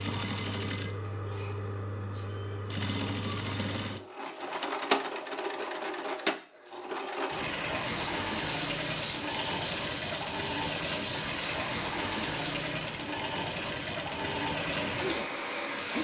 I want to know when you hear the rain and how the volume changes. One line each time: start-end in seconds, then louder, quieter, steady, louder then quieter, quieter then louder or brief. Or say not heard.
7.7-15.9 quieter then louder.